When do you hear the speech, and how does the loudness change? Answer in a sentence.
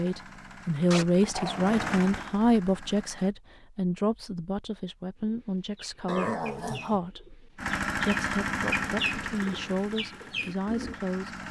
The speech can be heard from 0.0 to 11.3 s, getting quieter.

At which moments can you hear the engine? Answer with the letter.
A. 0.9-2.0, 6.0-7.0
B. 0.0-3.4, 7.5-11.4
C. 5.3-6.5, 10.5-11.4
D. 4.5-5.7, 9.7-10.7
B.